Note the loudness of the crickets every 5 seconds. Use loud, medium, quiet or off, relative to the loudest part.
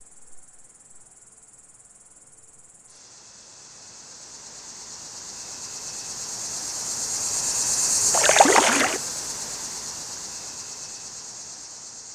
quiet, loud, medium.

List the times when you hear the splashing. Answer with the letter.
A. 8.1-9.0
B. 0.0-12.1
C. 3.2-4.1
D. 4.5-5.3
A.